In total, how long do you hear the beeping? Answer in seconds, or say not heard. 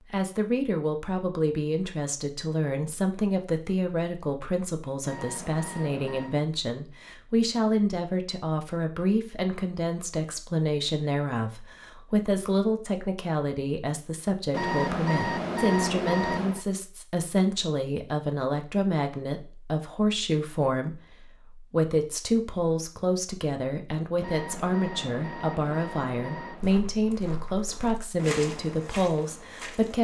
6 s.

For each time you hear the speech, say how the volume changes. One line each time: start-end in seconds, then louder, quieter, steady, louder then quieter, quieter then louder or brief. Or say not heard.
0.1-29.9 steady.